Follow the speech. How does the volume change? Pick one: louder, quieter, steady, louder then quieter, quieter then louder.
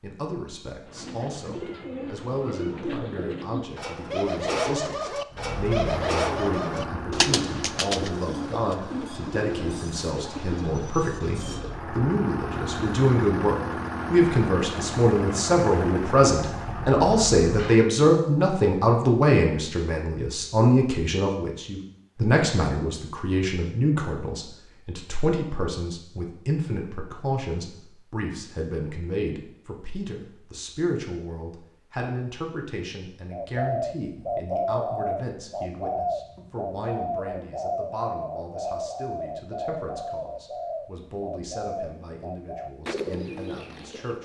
louder then quieter.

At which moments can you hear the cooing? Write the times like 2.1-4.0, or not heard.
0.8-11.8, 33.3-44.2.